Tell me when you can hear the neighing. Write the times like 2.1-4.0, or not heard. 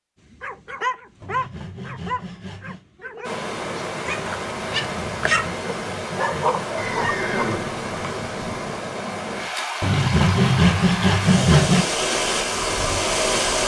6.8-8.8.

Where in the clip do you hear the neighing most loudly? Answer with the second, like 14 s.
7 s.